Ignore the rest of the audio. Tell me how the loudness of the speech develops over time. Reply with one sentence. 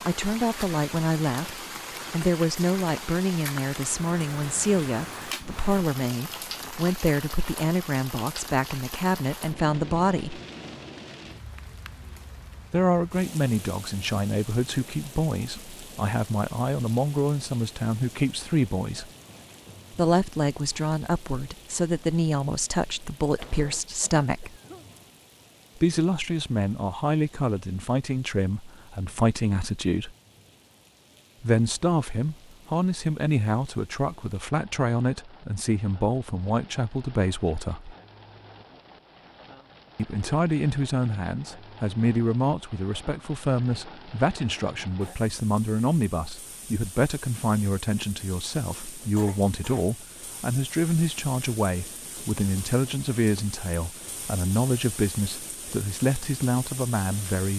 The loudness of the speech stays about the same.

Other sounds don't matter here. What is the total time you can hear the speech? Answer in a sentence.
You can hear the speech for 50 seconds altogether.